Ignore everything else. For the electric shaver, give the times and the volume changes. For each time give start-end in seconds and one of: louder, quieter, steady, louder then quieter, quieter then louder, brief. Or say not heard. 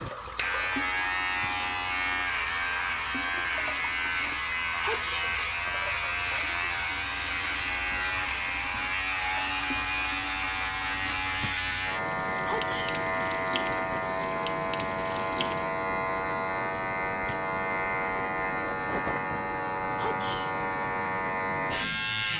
0.0-22.3 steady.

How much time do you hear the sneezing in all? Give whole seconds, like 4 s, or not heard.
2 s.